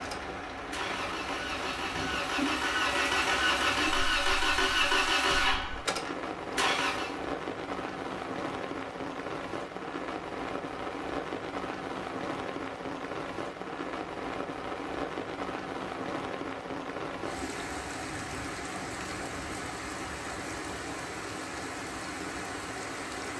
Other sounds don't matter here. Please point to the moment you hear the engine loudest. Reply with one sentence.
The loudest moment of the engine is at 5 seconds.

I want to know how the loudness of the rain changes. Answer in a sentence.
The volume of the rain stays about the same.